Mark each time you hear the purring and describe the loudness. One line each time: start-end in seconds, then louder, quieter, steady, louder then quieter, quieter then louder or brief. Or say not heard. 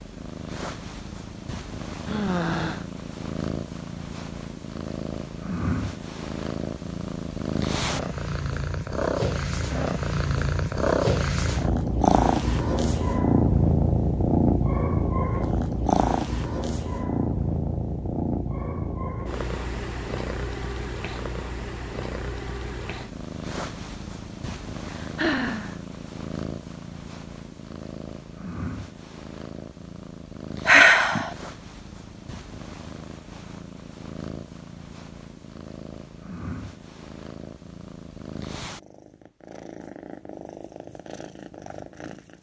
0.0-42.3 louder then quieter.